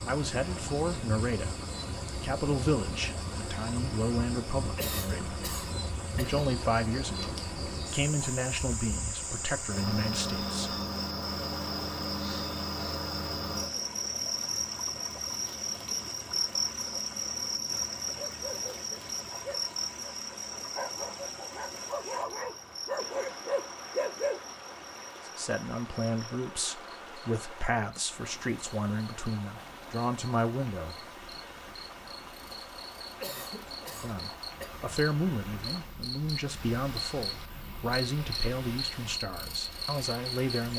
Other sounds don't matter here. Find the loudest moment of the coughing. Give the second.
5 s.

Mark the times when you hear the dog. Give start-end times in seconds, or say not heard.
18.1-24.4.